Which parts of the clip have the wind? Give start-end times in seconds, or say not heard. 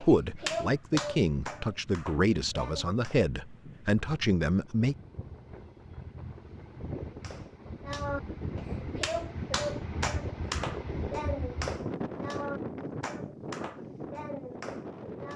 0.0-15.3.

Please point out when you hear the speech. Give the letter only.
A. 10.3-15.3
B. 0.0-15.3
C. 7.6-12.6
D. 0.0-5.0
D.